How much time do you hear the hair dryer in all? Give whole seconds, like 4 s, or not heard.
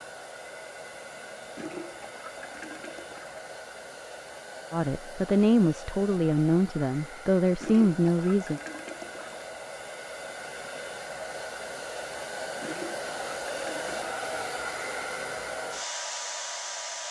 17 s.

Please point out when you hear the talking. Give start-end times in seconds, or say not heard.
4.7-8.6.